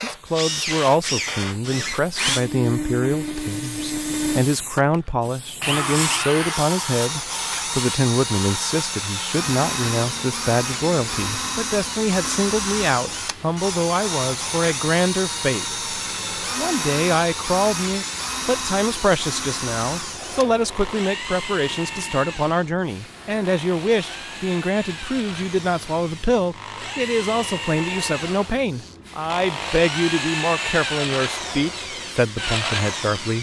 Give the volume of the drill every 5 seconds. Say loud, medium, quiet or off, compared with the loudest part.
loud, loud, loud, loud, medium, medium, loud.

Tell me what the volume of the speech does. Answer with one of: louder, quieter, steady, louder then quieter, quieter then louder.
steady.